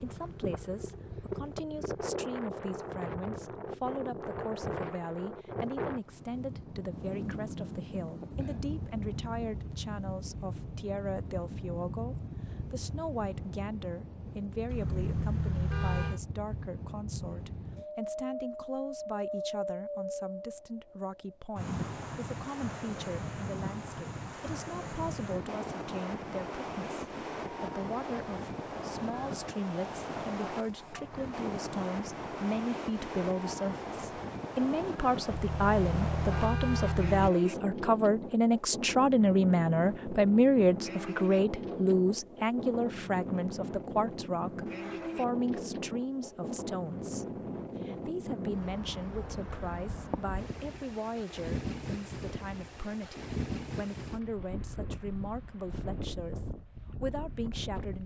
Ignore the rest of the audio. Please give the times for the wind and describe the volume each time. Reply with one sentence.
The wind can be heard from 0.0 to 58.0 s, at a steady volume.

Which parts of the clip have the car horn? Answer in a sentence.
You can hear the car horn from 14.7 to 16.2 s and from 35.3 to 37.3 s.